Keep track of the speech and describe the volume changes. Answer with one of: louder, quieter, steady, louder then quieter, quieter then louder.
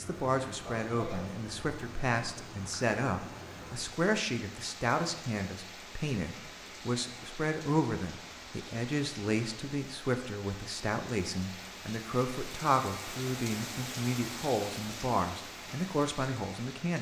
steady.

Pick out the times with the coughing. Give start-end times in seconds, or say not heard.
0.7-1.4.